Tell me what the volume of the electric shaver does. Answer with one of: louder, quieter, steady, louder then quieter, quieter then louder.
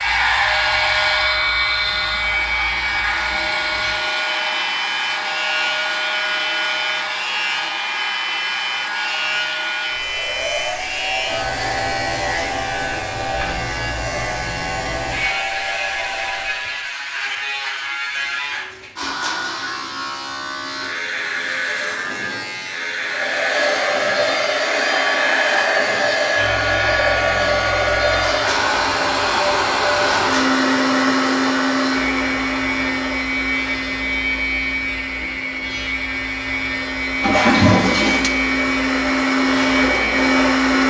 steady.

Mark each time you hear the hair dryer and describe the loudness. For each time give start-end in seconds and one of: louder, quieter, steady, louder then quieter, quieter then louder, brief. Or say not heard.
0.0-16.9 quieter
23.0-40.8 quieter then louder.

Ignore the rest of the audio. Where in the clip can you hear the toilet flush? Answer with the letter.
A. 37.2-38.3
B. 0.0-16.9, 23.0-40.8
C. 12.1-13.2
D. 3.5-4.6
A.